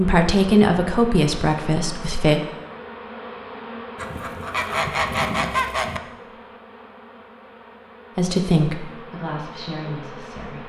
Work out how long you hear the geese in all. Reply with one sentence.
The geese can be heard for 2 seconds in total.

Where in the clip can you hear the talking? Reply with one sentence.
You can hear the talking from 0.0 to 2.4 s and from 8.2 to 10.6 s.